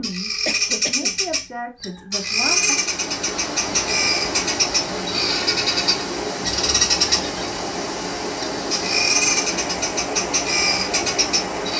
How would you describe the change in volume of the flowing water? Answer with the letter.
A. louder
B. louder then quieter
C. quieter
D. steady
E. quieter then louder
D.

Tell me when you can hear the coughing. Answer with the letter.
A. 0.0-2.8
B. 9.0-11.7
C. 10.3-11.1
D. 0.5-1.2
D.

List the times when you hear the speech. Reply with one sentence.
The speech can be heard from 0.0 to 2.8 s.